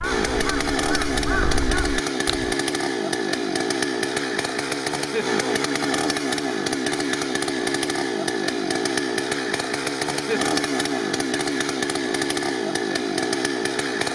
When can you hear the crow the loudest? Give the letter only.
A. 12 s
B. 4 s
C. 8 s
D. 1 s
D.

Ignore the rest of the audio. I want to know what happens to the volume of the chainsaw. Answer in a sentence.
The volume of the chainsaw stays about the same.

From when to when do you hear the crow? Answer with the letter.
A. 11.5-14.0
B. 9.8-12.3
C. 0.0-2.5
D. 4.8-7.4
C.